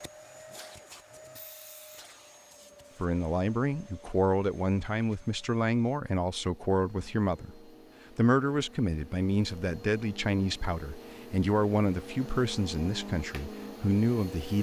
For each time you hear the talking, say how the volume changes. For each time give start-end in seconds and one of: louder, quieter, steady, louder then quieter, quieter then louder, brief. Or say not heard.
3.0-14.5 steady.